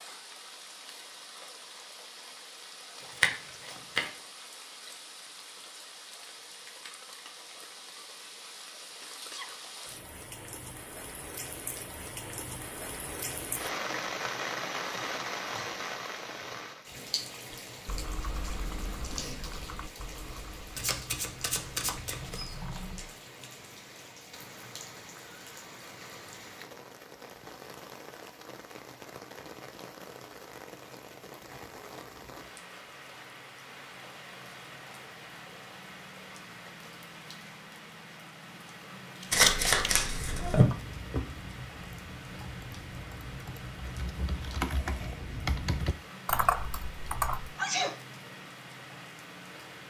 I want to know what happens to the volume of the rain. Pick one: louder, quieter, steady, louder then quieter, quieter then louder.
louder then quieter.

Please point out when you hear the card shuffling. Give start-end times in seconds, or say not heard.
3.2-4.0, 20.8-22.6, 39.3-40.6.